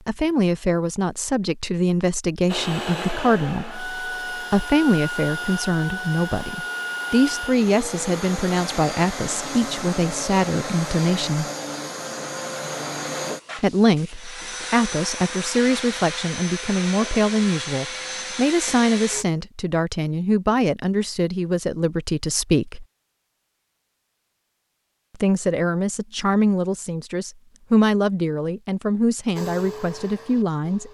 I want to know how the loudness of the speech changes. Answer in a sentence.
The volume of the speech stays about the same.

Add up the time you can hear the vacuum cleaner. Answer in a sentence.
You can hear the vacuum cleaner for 18 seconds altogether.